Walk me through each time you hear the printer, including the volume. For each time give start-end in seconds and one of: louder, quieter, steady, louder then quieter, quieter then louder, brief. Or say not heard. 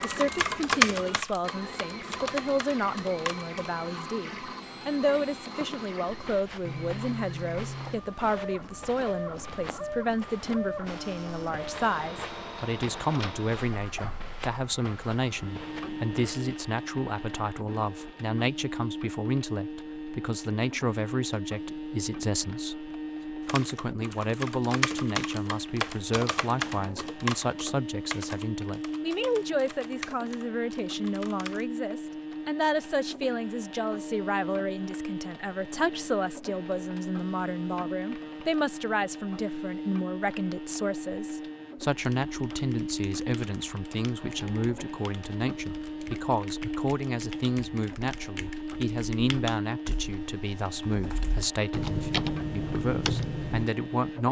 0.0-54.2 steady.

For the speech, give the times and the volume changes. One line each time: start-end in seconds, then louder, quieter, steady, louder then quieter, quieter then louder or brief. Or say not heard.
0.0-54.2 steady.